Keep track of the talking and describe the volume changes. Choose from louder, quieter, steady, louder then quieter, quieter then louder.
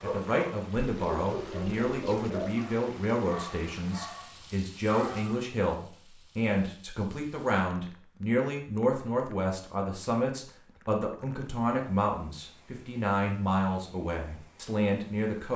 steady.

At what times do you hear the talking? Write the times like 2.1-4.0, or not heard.
0.0-15.5.